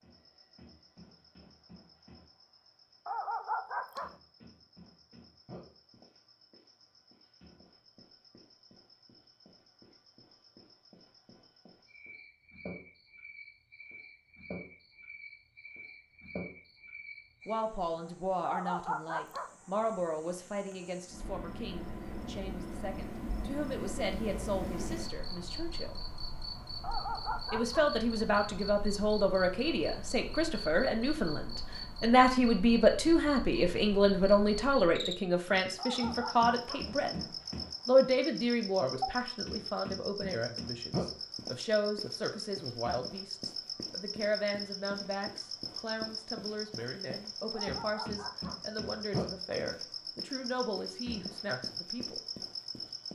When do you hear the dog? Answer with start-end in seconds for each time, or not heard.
3.0-4.1, 18.4-19.5, 26.8-27.9, 35.8-36.9, 47.5-48.6.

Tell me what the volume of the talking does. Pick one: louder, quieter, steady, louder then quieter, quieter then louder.
louder then quieter.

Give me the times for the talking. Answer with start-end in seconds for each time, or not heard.
17.4-25.9, 27.5-37.2, 37.9-52.2.